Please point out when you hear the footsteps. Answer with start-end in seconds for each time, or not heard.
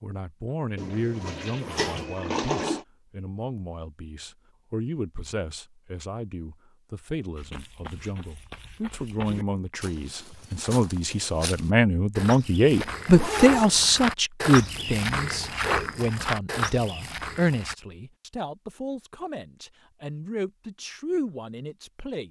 7.3-17.8.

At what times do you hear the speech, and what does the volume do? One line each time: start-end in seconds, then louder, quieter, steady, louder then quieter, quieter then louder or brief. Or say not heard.
0.0-22.2 louder then quieter.